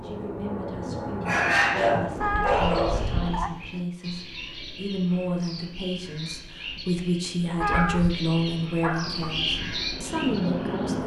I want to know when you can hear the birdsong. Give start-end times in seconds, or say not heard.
2.5-11.0.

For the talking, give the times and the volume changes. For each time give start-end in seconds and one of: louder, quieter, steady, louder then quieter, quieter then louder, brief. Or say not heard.
0.0-11.0 louder.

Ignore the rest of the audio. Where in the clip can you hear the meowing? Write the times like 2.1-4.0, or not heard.
2.2-3.5, 7.6-8.2.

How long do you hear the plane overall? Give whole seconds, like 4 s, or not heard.
5 s.